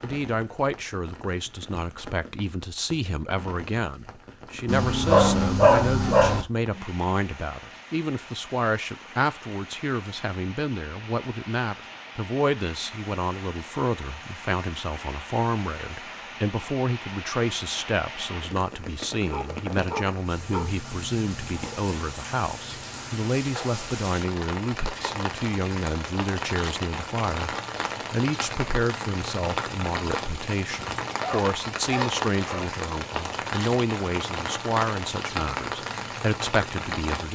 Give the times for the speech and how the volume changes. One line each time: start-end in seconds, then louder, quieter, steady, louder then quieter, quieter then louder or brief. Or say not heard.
0.0-37.2 steady.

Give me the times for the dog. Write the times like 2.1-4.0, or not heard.
4.7-6.5, 19.3-20.8, 31.2-32.7.